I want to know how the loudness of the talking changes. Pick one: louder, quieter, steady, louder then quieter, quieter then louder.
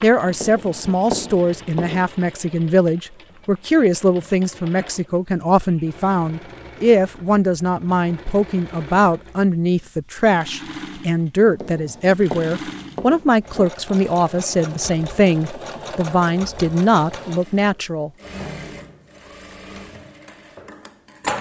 steady.